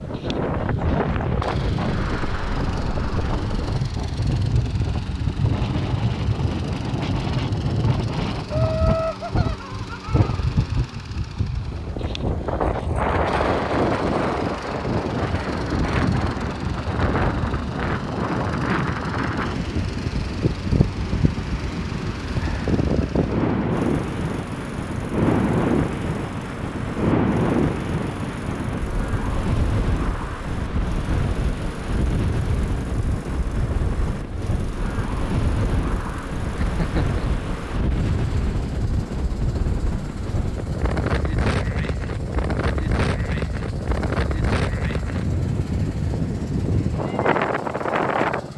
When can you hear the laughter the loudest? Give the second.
9 s.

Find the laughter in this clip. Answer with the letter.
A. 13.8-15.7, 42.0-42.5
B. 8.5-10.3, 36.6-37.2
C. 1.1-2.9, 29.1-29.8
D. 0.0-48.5
B.